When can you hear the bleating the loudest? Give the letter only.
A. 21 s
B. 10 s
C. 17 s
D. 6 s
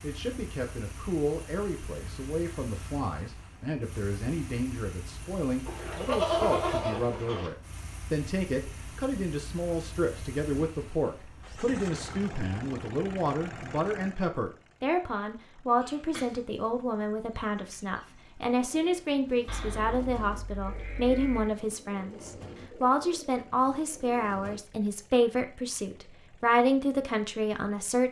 D.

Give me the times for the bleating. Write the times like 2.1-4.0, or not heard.
5.7-7.5, 15.8-16.4, 19.4-21.5.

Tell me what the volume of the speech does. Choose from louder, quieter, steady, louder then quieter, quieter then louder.
louder.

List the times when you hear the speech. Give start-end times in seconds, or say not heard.
0.0-28.0.